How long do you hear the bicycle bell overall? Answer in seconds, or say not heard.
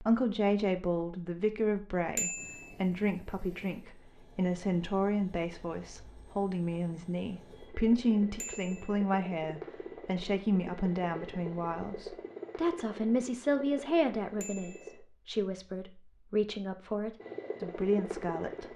2 s.